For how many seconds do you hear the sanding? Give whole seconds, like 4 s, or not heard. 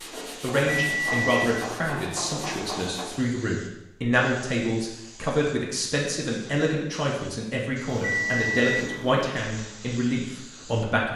3 s.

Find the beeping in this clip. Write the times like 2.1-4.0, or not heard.
0.6-1.9, 7.8-9.3.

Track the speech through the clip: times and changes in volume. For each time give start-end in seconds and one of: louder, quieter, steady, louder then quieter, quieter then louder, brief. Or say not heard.
0.4-11.1 steady.